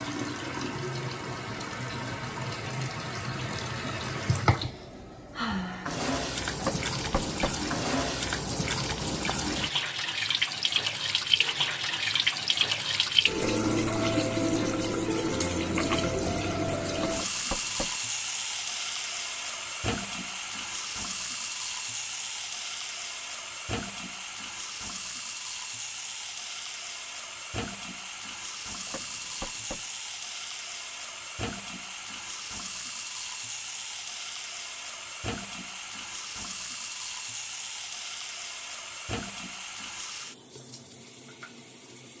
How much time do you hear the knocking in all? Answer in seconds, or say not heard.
3 s.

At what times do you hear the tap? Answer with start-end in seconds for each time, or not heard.
0.0-42.1.